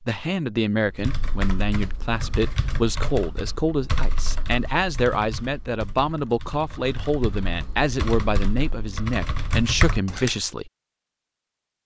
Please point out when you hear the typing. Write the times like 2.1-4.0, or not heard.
0.8-10.3.